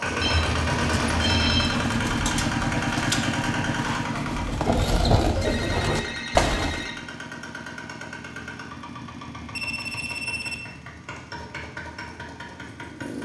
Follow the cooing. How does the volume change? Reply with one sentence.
The volume of the cooing goes up.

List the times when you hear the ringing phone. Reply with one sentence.
The ringing phone can be heard from 0.2 to 1.8 s, from 5.4 to 7.0 s and from 9.5 to 10.7 s.